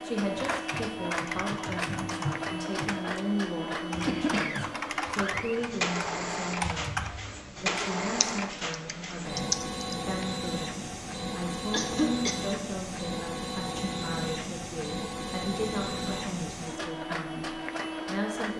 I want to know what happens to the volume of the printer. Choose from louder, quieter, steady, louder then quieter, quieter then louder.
steady.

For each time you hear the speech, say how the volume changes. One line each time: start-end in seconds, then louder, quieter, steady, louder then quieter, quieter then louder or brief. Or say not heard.
0.0-18.5 steady.